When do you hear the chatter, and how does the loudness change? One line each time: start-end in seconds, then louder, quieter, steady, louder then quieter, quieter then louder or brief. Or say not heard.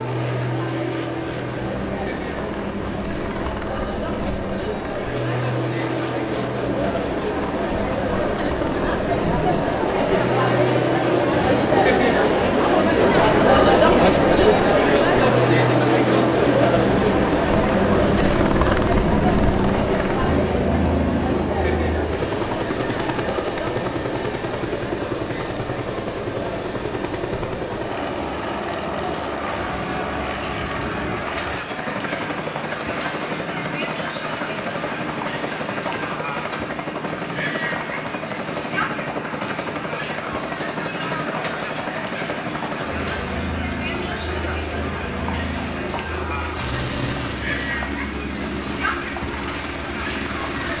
0.0-50.7 louder then quieter.